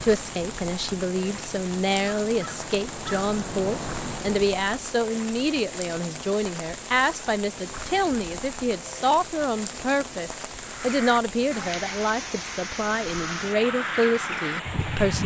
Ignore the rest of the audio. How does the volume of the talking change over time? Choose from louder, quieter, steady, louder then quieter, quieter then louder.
steady.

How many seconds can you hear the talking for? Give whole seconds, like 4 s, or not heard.
15 s.